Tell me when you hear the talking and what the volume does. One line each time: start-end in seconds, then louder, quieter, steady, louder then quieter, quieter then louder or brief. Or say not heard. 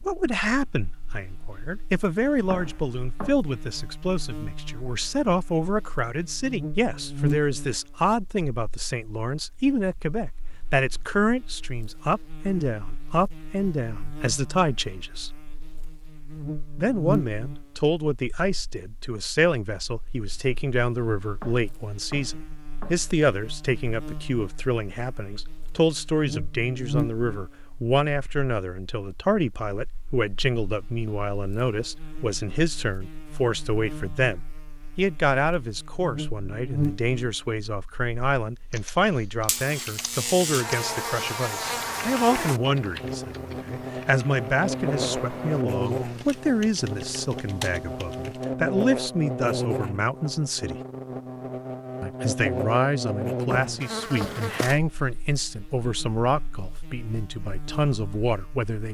0.0-15.3 steady
16.8-50.8 steady
52.0-58.8 steady.